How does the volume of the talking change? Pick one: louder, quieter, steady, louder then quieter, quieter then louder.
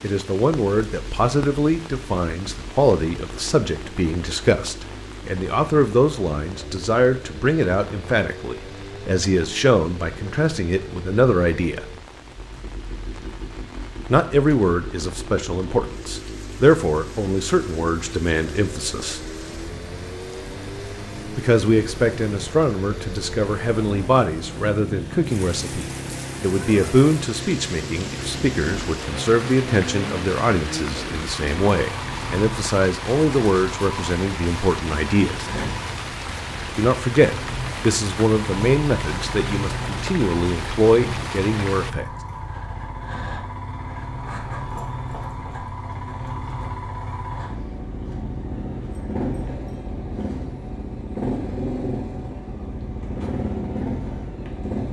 steady.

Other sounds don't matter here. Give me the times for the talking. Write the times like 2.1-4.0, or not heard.
0.0-11.8, 14.1-19.2, 21.4-35.5, 36.8-42.0.